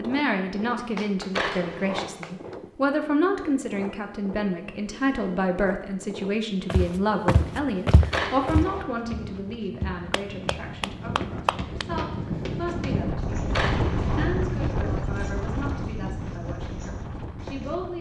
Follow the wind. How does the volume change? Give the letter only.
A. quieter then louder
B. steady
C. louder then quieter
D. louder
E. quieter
D.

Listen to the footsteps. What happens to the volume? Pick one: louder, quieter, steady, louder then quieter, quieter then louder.
quieter.